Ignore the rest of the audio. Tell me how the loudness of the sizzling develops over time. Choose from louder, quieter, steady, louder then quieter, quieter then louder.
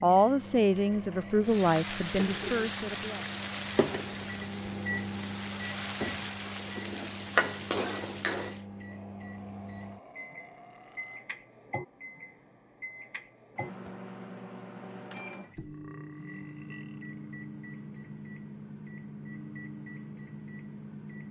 quieter then louder.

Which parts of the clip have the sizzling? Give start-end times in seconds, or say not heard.
1.4-8.6.